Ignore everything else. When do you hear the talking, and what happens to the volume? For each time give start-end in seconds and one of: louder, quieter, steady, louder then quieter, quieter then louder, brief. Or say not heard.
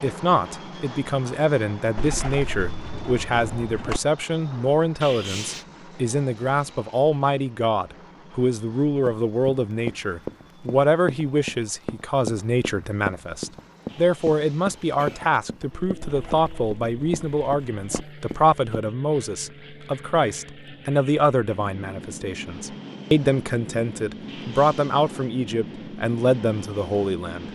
0.0-27.4 steady.